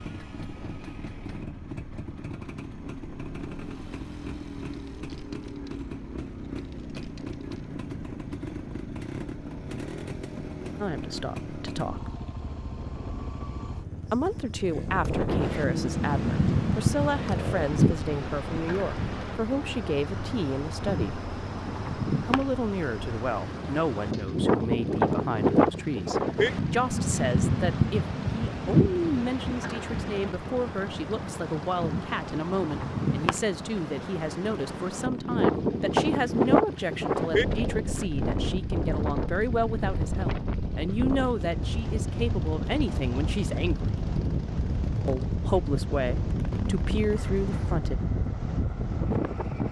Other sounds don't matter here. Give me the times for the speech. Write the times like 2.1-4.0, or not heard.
10.8-12.1, 14.0-21.2, 22.2-44.0, 45.0-48.0.